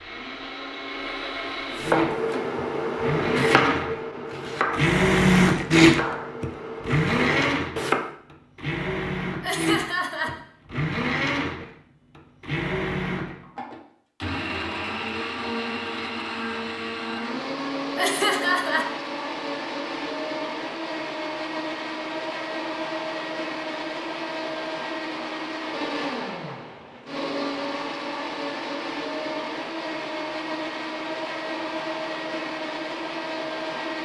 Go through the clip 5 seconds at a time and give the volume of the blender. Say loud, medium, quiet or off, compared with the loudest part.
medium, loud, medium, medium, medium, medium, medium.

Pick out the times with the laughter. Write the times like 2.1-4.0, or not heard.
9.4-10.3, 17.9-18.9.